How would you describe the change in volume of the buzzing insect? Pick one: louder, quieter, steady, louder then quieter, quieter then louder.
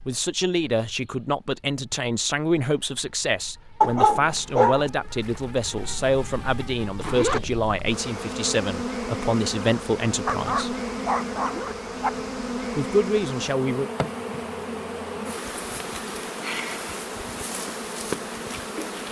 louder.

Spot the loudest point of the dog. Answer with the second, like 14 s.
4 s.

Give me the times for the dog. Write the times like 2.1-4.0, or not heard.
3.8-4.8, 10.2-12.1.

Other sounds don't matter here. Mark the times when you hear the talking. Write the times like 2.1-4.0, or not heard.
0.1-10.8, 12.8-13.9.